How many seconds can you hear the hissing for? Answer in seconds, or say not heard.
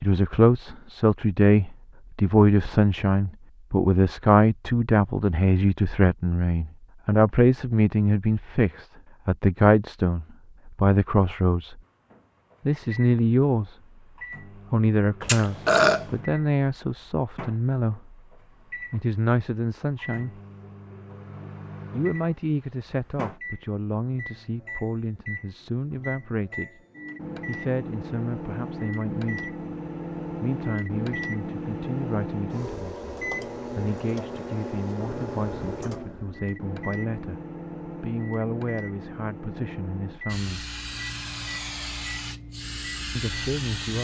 4 s.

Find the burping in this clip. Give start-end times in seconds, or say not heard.
15.2-16.1.